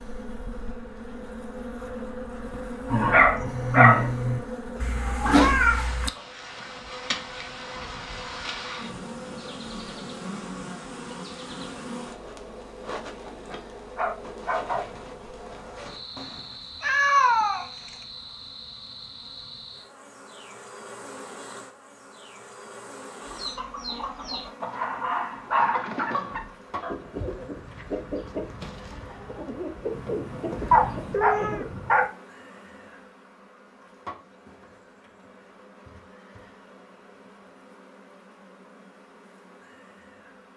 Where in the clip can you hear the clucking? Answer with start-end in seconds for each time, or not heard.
23.2-31.7.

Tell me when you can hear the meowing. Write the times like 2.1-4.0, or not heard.
4.8-6.1, 16.1-18.1, 29.9-31.6.